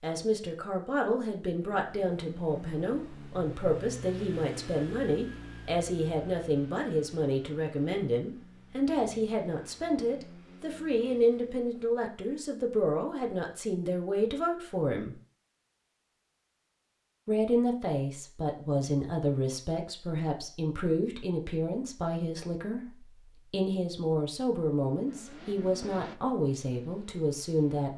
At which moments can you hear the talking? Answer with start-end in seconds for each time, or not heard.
0.0-15.2, 17.2-27.9.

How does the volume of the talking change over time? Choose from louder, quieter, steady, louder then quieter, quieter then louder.
steady.